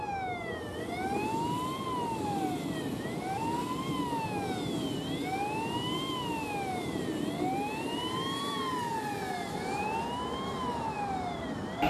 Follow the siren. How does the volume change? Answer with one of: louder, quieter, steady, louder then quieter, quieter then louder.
steady.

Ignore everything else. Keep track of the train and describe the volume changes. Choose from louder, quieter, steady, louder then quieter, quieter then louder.
steady.